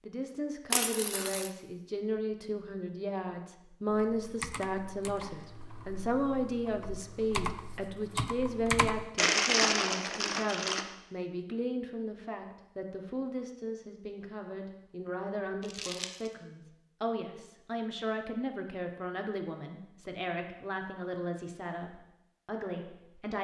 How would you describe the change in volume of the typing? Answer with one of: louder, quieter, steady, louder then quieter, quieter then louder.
quieter then louder.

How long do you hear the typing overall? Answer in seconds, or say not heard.
5 s.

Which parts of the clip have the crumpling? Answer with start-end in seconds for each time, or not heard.
0.7-1.5, 9.2-10.8, 15.6-16.3.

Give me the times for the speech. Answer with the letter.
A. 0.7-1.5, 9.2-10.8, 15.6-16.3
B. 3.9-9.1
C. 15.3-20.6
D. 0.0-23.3
D.